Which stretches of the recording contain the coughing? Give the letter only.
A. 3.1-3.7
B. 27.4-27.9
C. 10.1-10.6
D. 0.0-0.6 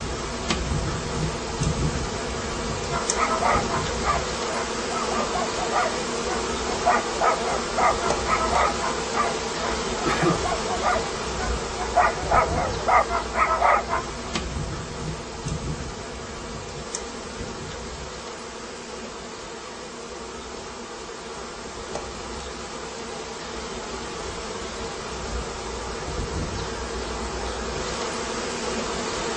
C.